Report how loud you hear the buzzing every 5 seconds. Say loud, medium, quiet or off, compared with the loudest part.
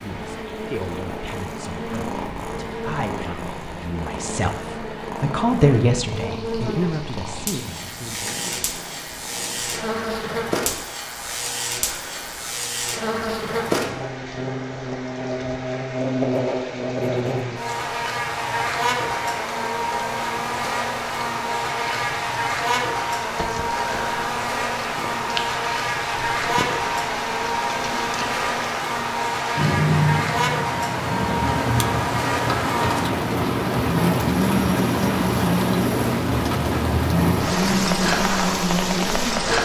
medium, medium, loud, loud, loud, loud, loud, loud.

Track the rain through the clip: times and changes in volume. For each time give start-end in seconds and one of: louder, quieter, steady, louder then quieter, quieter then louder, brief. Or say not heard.
0.0-39.6 louder.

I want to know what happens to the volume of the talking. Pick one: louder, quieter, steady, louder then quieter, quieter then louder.
louder then quieter.